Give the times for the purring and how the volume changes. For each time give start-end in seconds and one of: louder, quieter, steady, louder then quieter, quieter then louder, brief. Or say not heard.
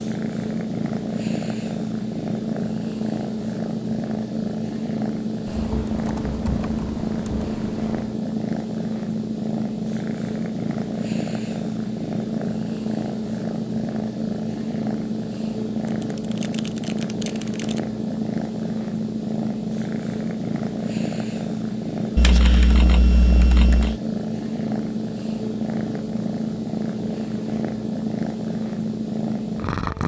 0.0-30.0 steady.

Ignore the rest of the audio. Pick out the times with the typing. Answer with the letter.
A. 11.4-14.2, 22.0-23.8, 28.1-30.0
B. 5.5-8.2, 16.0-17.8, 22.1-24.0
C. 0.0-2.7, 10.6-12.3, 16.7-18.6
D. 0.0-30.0
B.